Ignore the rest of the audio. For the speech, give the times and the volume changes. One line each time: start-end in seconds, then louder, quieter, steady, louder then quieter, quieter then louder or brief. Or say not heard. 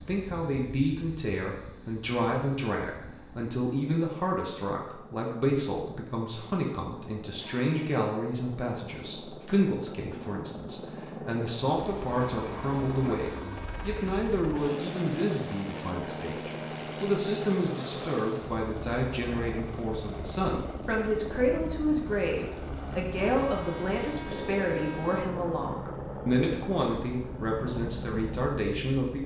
0.0-29.2 steady.